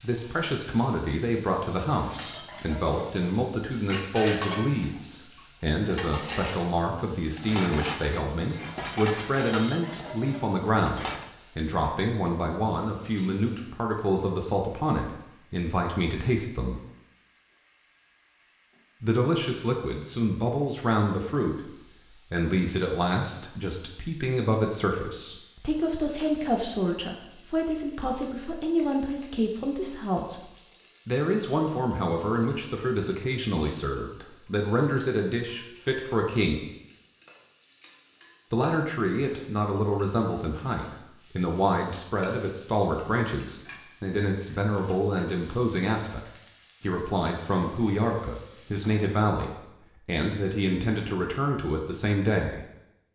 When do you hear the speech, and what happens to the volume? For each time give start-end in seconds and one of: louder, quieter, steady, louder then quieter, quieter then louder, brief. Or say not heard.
0.0-16.8 steady
19.0-36.6 steady
38.5-52.6 steady.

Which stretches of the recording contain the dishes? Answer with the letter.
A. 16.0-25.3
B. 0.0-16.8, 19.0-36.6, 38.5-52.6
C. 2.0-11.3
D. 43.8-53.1
C.